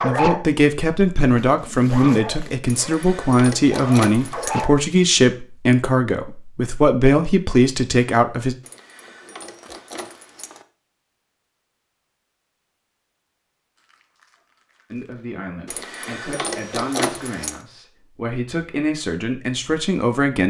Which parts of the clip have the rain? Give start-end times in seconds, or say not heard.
not heard.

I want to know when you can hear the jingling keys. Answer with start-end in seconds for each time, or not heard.
2.6-4.7, 8.6-10.7, 15.7-17.6.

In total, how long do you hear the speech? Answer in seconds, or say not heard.
14 s.